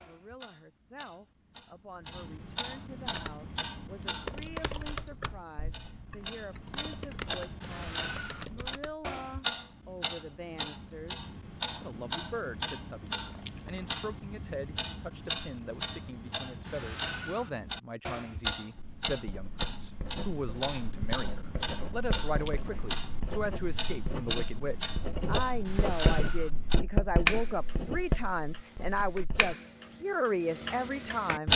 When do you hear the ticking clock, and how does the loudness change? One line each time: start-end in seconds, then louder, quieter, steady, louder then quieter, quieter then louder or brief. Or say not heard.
0.0-31.5 louder.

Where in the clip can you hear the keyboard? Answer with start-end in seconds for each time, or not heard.
3.0-9.1.